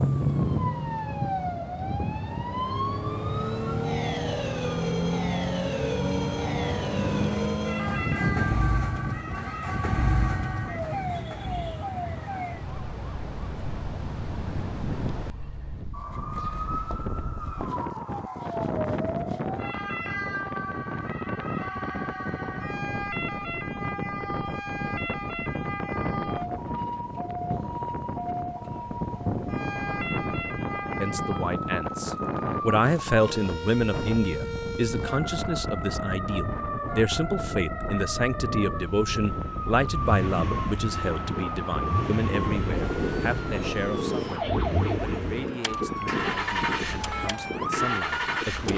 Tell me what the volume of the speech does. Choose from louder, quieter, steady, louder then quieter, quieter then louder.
quieter.